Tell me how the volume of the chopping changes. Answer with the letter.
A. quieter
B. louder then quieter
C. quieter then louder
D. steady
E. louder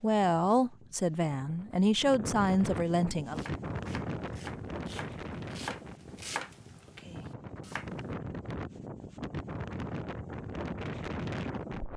B.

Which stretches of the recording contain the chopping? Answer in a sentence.
You can hear the chopping from 3.3 to 8.1 s.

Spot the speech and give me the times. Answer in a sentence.
You can hear the speech from 0.0 to 3.4 s.